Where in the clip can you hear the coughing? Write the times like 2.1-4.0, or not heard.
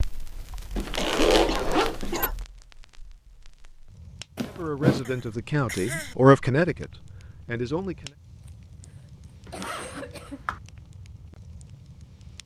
0.5-2.4, 5.0-6.2, 8.4-10.4.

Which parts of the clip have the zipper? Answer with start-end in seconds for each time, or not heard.
0.8-2.3, 4.3-5.0, 9.4-10.6.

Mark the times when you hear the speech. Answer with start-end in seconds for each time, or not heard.
4.5-8.1.